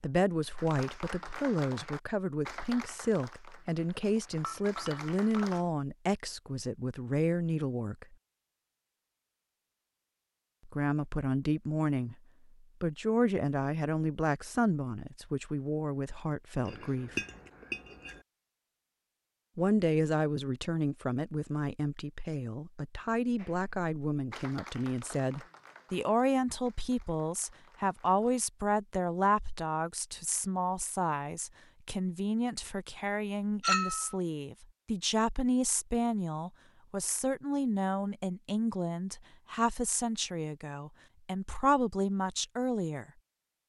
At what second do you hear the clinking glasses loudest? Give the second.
34 s.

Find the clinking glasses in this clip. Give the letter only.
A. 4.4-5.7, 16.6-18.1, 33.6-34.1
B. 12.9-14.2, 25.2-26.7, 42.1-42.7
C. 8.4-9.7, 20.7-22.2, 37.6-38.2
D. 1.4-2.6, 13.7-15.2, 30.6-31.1
A.